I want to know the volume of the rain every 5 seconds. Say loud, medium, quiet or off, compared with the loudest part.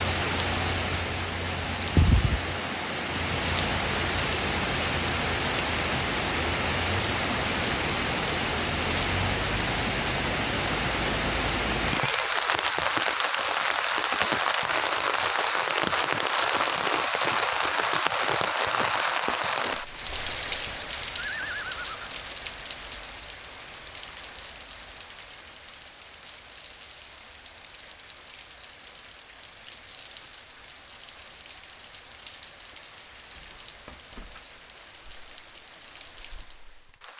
loud, loud, loud, loud, medium, quiet, quiet, quiet.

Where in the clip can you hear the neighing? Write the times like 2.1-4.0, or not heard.
11.9-12.9, 21.1-22.2.